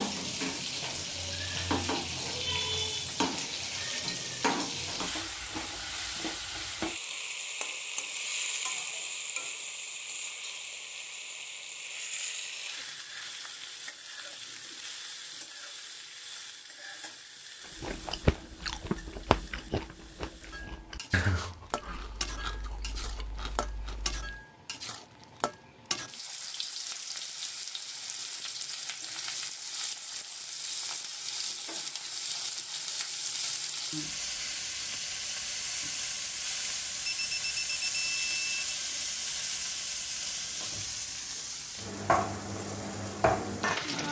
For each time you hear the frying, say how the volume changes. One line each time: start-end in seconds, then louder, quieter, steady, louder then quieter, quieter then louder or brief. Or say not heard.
0.0-44.0 quieter then louder.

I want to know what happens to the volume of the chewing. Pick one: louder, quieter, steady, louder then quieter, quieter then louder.
quieter.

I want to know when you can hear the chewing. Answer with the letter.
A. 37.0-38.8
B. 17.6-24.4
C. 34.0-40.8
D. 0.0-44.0
B.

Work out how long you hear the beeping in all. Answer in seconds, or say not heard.
2 s.